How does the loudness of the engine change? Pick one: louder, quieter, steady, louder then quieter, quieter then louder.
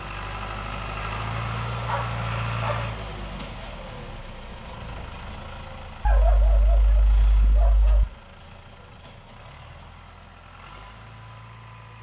quieter.